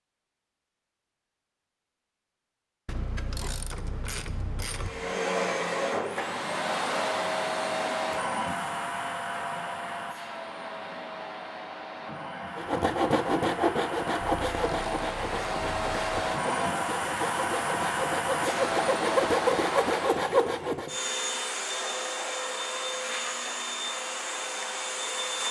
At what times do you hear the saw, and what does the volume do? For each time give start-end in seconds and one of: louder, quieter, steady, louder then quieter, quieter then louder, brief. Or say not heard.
12.6-20.9 quieter then louder.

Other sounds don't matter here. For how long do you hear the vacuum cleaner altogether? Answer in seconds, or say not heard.
21 s.